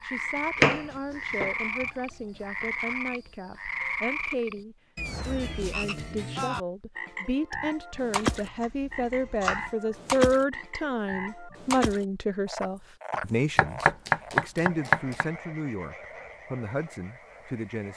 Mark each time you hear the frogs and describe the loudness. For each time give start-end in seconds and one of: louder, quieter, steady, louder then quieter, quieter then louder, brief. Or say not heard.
0.0-17.9 quieter.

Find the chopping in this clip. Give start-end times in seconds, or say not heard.
0.6-1.6, 8.3-9.7, 13.1-15.2.